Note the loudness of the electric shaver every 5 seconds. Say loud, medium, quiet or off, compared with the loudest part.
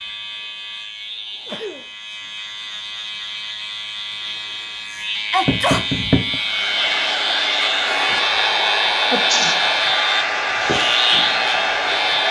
medium, loud, loud.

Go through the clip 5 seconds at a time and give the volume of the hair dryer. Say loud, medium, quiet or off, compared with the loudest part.
off, loud, loud.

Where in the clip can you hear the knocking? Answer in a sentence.
The knocking can be heard from 5.5 to 6.4 s.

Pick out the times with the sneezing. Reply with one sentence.
The sneezing can be heard from 1.4 to 1.9 s, from 5.3 to 5.8 s and from 9.1 to 9.6 s.